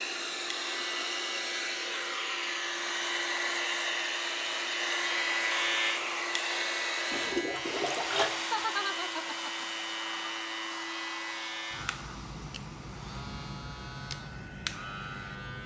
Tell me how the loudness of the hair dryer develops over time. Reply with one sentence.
The volume of the hair dryer goes down.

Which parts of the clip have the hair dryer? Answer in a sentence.
You can hear the hair dryer from 0.0 to 15.3 s.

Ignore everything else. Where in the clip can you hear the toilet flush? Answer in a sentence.
The toilet flush can be heard from 7.1 to 8.4 s.